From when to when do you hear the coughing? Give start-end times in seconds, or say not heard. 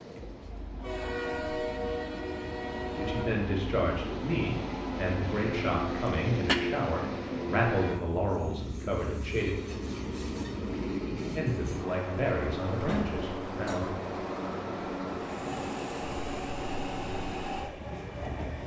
6.0-6.6.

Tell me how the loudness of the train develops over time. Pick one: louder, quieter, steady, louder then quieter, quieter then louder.
steady.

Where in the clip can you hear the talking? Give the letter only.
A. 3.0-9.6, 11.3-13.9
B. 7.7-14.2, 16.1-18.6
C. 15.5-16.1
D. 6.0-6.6
A.